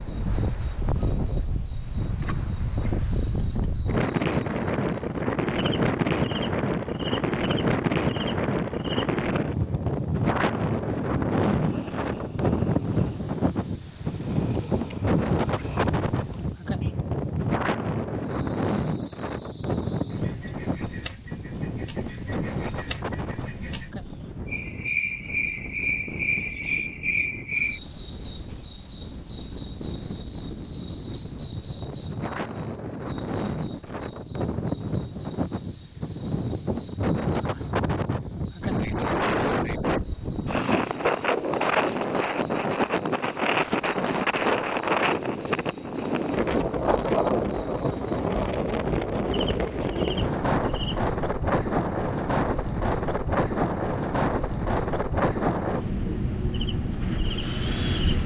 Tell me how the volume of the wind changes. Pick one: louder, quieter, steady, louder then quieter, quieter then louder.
quieter then louder.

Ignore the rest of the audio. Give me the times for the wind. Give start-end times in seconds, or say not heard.
0.0-58.2.